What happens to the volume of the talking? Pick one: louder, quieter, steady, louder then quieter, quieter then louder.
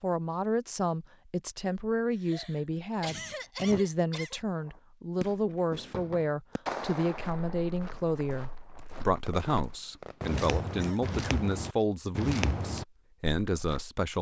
steady.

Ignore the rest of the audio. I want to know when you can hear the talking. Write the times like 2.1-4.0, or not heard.
0.0-14.1.